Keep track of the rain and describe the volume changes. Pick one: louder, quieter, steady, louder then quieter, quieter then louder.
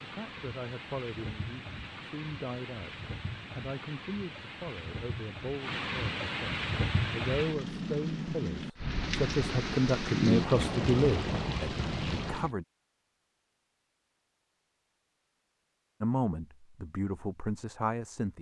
louder.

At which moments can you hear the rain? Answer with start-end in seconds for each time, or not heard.
0.0-12.5.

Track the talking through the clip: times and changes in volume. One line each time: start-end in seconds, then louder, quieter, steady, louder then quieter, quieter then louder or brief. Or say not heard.
0.0-12.7 louder
16.0-18.3 brief.